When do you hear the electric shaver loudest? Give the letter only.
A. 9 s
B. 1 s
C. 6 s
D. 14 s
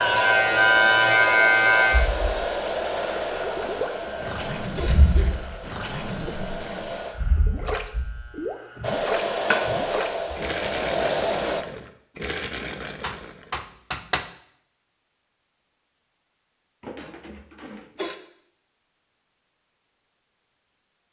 B.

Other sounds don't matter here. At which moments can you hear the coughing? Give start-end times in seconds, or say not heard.
3.6-5.3, 16.8-18.1.